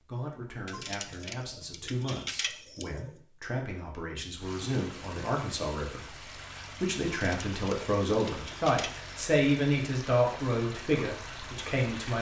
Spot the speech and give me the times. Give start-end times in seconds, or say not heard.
0.0-12.1.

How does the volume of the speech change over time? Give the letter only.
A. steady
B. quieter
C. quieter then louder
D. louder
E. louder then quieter
D.